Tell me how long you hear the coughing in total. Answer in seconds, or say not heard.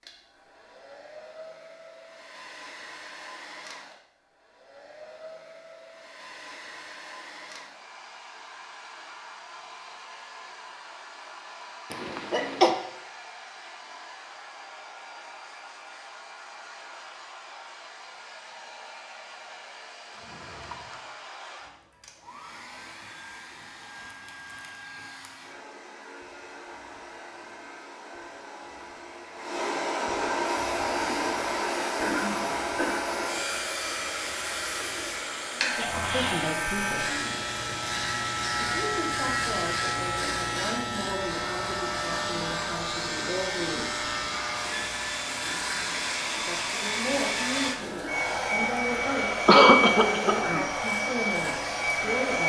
4 s.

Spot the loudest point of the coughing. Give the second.
50 s.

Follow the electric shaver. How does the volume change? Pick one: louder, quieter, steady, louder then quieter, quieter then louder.
louder then quieter.